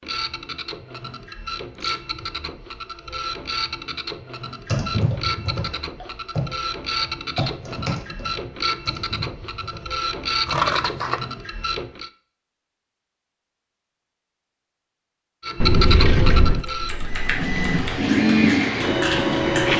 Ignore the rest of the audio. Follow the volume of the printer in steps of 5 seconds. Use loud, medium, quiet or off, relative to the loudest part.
medium, medium, medium, loud.